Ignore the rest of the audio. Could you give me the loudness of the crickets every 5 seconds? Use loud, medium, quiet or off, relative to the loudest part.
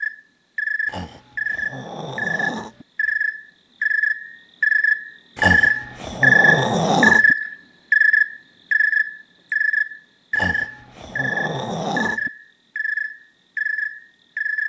medium, loud, medium.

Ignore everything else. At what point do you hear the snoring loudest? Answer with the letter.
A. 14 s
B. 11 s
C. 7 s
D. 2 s
C.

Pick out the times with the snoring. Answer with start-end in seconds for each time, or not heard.
0.8-2.9, 5.3-7.3, 10.3-12.3.